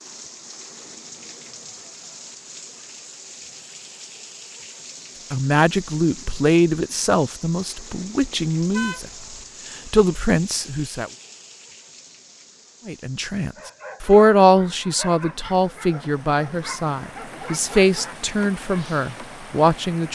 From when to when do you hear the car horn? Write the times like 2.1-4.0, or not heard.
8.6-9.4.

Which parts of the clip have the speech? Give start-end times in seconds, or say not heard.
5.3-9.1, 9.8-11.1, 12.8-20.1.